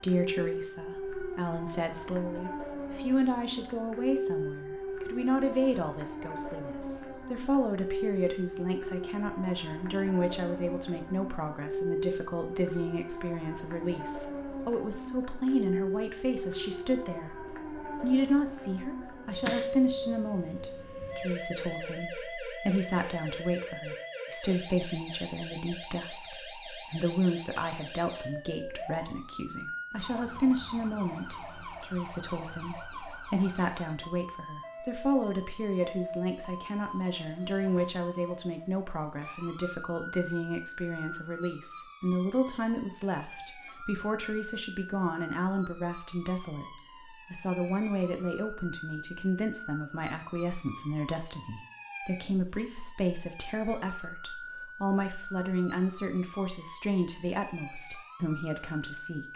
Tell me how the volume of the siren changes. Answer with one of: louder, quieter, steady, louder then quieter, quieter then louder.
quieter.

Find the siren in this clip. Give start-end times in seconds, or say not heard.
0.0-59.3.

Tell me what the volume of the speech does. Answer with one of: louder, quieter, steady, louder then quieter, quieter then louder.
steady.